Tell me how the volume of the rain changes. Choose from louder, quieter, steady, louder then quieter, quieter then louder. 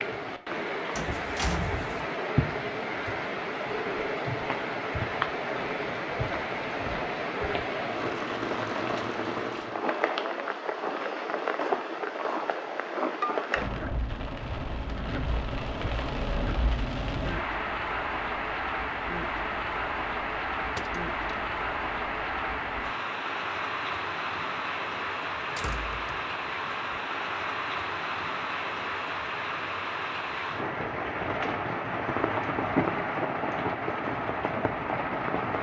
steady.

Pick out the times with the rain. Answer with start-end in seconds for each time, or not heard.
0.0-35.5.